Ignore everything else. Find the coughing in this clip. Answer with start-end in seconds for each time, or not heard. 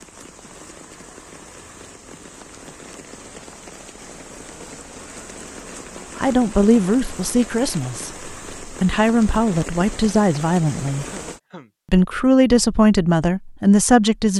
11.1-11.7.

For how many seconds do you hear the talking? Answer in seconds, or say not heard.
7 s.